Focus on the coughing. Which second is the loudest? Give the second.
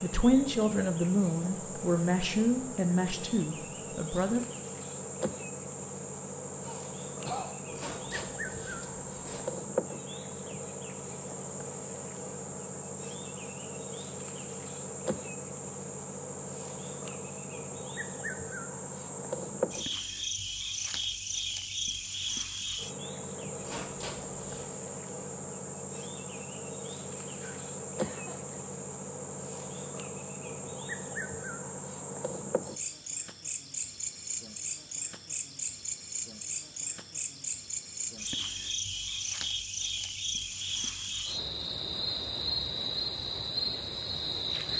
7 s.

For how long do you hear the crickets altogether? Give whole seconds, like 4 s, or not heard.
45 s.